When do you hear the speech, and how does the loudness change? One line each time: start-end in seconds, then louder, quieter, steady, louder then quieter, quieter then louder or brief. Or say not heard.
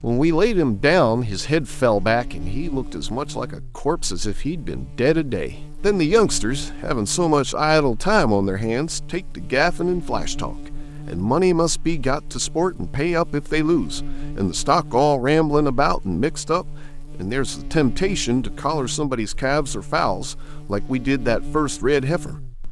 0.0-22.4 steady.